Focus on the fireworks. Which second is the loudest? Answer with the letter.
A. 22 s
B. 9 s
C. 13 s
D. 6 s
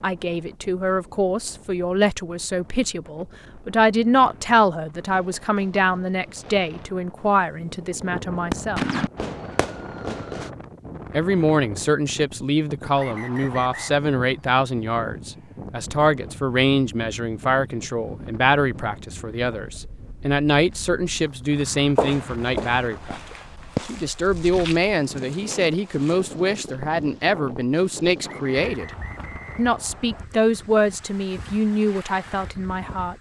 B.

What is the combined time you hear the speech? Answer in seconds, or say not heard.
30 s.